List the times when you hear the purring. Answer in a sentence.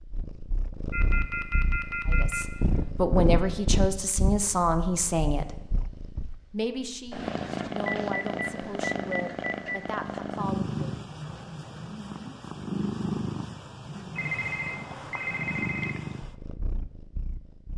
You can hear the purring from 0.0 to 17.7 s.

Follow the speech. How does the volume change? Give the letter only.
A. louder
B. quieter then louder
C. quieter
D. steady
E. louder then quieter
C.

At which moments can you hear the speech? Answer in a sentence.
You can hear the speech from 2.0 to 5.5 s and from 6.5 to 11.1 s.